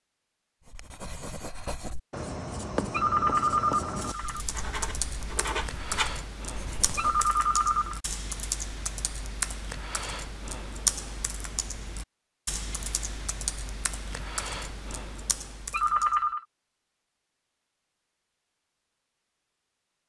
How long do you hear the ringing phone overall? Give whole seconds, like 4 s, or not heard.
3 s.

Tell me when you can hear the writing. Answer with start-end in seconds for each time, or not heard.
0.7-7.3.